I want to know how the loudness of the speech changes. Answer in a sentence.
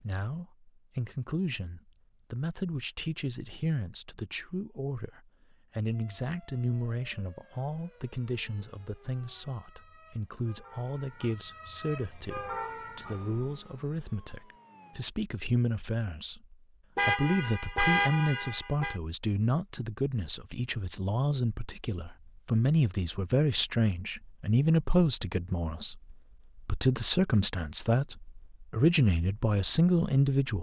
The volume of the speech goes up.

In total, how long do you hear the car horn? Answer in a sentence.
The car horn can be heard for 2 seconds in total.